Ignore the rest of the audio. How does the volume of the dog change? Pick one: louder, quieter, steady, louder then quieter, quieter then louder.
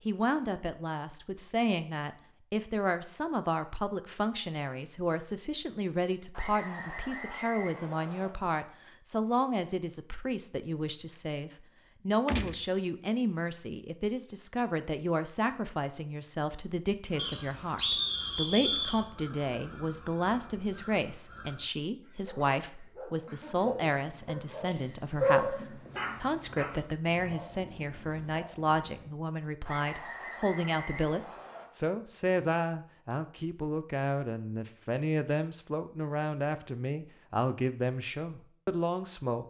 louder then quieter.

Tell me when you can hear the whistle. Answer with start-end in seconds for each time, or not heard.
6.3-8.3, 17.1-19.0, 29.6-31.6.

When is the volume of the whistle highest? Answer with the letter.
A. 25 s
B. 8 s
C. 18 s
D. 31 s
C.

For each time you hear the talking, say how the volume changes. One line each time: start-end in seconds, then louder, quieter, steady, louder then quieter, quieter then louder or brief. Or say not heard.
0.1-39.4 steady.